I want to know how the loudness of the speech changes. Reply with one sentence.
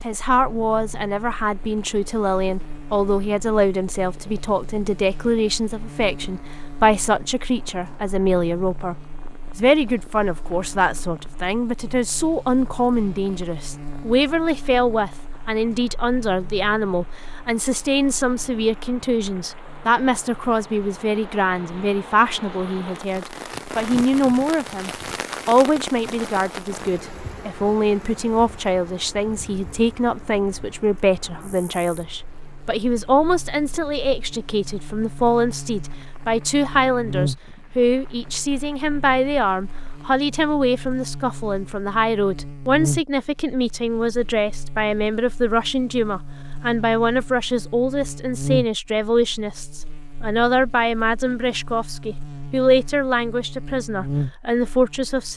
The volume of the speech stays about the same.